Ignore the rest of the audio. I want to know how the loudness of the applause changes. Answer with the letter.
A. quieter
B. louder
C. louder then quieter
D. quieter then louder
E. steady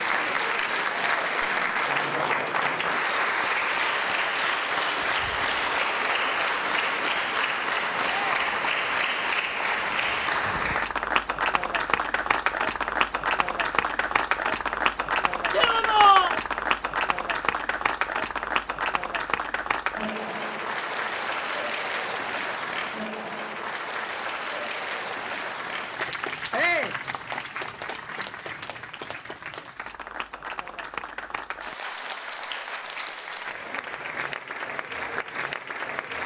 A.